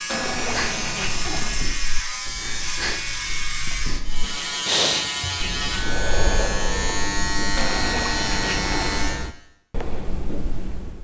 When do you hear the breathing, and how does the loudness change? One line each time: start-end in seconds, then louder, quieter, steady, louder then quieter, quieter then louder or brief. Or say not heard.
0.4-10.9 louder then quieter.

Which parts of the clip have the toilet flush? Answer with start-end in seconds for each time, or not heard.
0.1-1.6, 7.5-9.1.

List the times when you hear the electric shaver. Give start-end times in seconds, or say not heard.
0.0-9.3.